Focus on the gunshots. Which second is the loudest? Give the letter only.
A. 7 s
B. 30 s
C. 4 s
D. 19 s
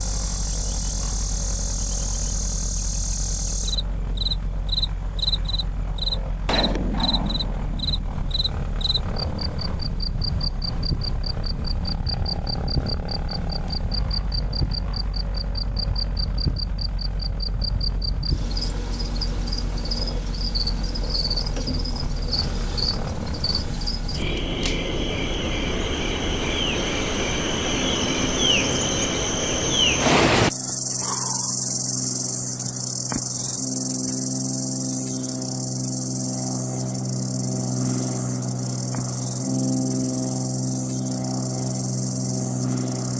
A.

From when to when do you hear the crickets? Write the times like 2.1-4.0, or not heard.
0.0-43.1.